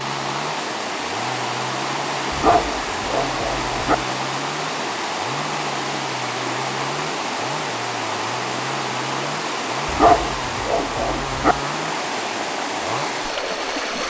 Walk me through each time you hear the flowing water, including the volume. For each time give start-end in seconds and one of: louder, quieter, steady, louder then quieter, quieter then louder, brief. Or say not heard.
0.0-14.0 steady.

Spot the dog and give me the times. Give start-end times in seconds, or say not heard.
2.3-4.0, 9.8-11.6.